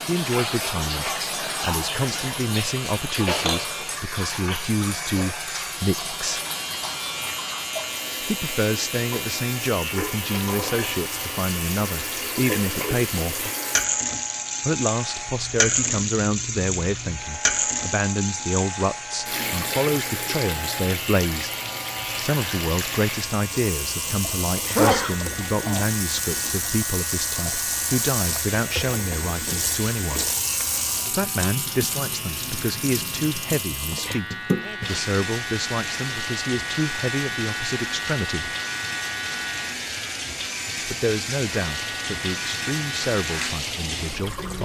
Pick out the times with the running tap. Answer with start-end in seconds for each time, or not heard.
0.0-44.5.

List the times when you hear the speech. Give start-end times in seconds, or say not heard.
0.1-6.5, 8.2-13.5, 14.6-21.5, 22.2-30.2, 31.1-38.5, 40.9-44.5.